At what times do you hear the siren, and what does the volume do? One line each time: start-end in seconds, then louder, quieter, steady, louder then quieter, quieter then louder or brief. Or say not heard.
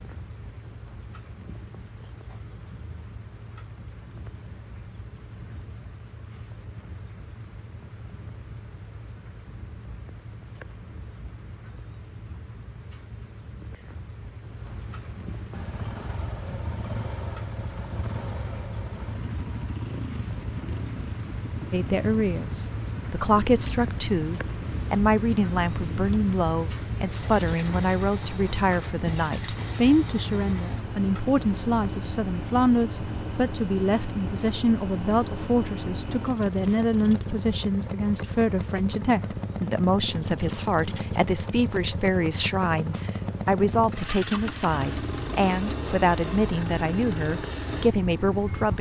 not heard.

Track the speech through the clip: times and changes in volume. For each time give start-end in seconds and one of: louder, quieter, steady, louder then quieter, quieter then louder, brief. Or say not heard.
21.7-48.7 steady.